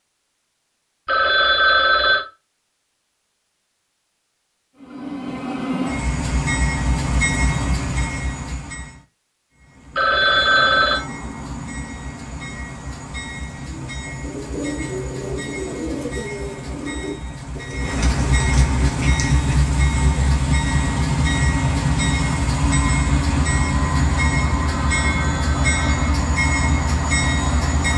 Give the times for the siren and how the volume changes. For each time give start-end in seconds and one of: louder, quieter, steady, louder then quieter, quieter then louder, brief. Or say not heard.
not heard.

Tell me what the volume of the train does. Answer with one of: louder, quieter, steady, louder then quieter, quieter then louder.
quieter then louder.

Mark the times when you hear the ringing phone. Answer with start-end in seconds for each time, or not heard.
1.1-2.2, 9.9-11.0, 24.7-26.0.